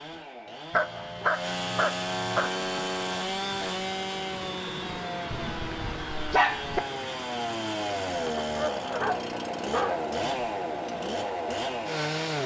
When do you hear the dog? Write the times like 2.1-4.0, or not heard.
0.7-2.5, 5.3-6.8, 8.3-9.9.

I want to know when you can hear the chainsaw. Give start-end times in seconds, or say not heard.
0.0-12.4.